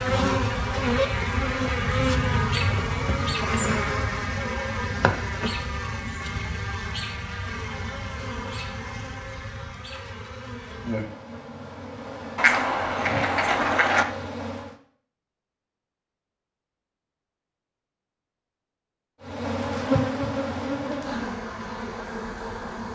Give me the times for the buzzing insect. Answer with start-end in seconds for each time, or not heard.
0.0-14.8, 19.2-22.9.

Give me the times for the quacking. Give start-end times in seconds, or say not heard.
12.3-14.1.